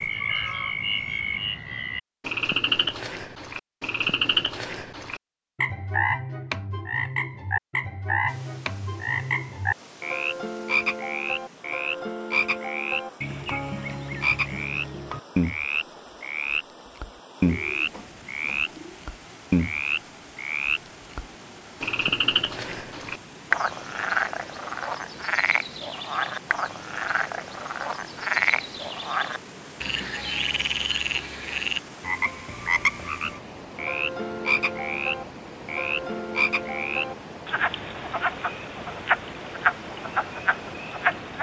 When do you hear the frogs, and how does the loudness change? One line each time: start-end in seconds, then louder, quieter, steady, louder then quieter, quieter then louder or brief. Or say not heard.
0.0-41.3 steady.